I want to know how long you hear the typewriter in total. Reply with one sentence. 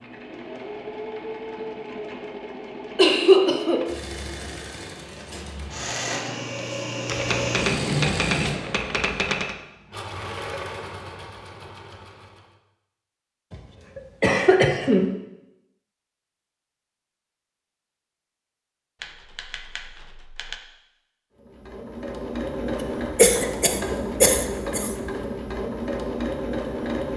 You can hear the typewriter for 4 seconds altogether.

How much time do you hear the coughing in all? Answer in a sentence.
The coughing can be heard for 4 seconds in total.